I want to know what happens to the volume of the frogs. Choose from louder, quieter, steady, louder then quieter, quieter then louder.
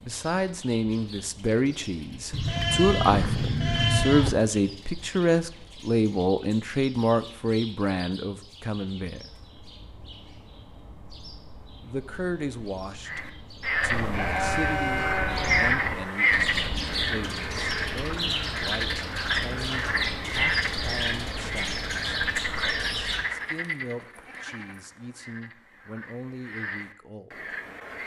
quieter.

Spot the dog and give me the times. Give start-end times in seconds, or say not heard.
not heard.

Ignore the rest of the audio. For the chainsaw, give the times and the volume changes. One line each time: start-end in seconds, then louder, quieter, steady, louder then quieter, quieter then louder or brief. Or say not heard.
not heard.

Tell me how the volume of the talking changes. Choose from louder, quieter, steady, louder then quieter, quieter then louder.
quieter.